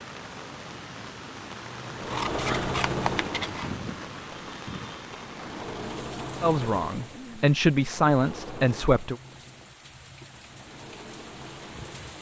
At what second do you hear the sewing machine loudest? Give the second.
3 s.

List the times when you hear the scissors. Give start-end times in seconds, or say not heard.
2.0-3.8.